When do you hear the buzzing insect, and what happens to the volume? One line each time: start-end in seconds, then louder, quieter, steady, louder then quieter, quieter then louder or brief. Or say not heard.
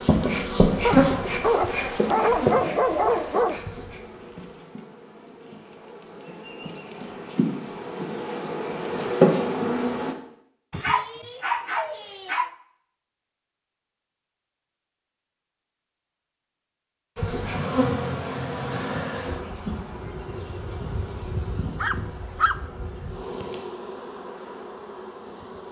0.0-10.2 quieter then louder
17.1-25.6 quieter.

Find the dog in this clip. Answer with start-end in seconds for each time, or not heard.
0.8-3.6, 10.7-12.5, 21.8-22.6.